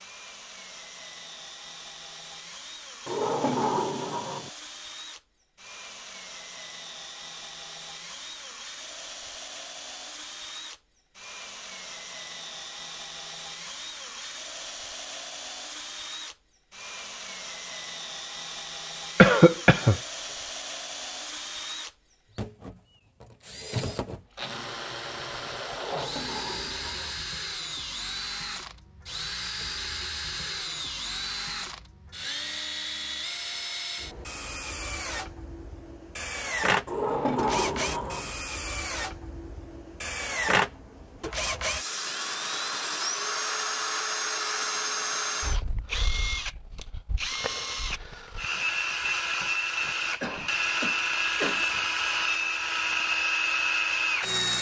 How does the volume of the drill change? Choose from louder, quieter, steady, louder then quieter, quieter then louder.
louder.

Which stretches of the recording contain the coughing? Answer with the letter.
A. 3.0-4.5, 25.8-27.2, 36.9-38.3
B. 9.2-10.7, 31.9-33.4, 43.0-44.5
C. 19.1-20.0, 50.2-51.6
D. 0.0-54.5
C.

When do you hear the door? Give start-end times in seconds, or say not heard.
3.0-4.5, 25.8-27.2, 36.9-38.3.